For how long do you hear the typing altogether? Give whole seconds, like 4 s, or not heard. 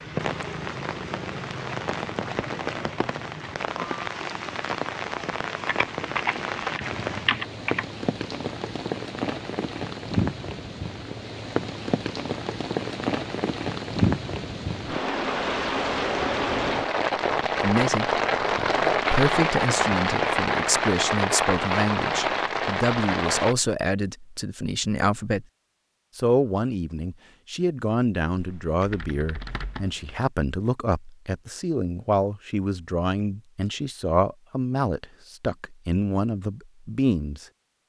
4 s.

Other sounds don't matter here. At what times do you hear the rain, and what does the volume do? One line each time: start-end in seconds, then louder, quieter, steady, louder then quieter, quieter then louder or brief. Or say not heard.
0.0-23.6 louder.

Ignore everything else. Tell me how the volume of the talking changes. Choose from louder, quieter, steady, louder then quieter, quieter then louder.
steady.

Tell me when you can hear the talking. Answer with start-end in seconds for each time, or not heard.
17.6-25.4, 26.1-37.5.